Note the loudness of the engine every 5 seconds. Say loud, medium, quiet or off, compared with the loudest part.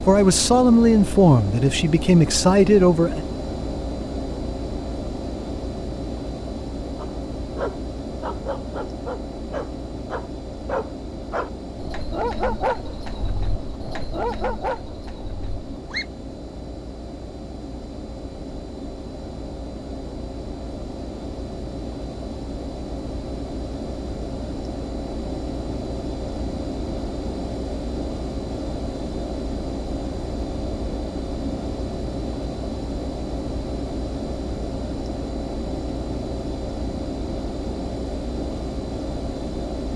loud, loud, medium, medium, loud, loud, loud, loud.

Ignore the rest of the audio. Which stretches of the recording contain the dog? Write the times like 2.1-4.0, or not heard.
7.0-16.1.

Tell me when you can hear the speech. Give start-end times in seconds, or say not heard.
0.0-3.2.